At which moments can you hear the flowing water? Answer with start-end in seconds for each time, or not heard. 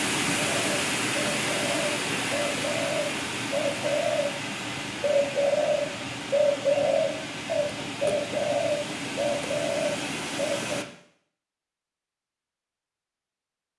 0.0-10.8.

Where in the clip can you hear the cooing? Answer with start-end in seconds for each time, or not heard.
0.3-10.8.